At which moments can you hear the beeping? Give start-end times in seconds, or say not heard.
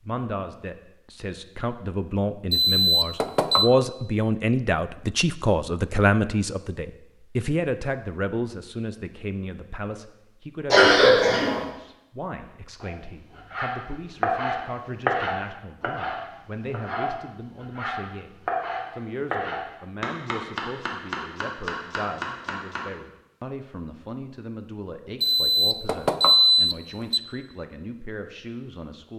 2.5-3.7, 25.2-27.2.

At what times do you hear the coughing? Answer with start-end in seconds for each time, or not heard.
10.7-11.6.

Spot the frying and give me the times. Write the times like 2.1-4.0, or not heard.
not heard.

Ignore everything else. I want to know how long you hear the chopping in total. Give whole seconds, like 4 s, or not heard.
10 s.